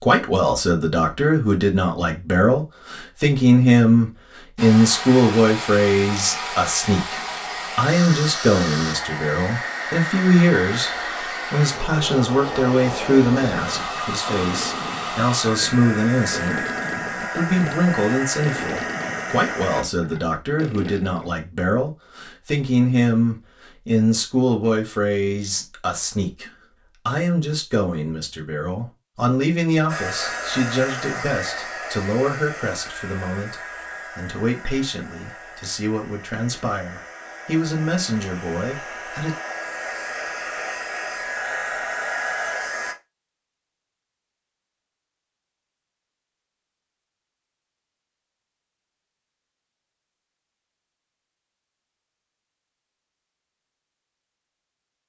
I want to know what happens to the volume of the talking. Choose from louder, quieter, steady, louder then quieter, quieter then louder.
quieter.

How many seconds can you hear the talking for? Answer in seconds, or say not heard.
39 s.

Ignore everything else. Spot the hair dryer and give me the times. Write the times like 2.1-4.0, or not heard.
4.5-19.9, 29.9-43.0.